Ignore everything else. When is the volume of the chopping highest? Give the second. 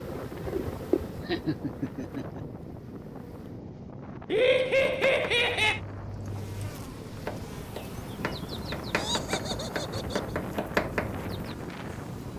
11 s.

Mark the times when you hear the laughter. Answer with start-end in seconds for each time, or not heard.
1.2-2.5, 4.3-5.8, 8.9-10.3.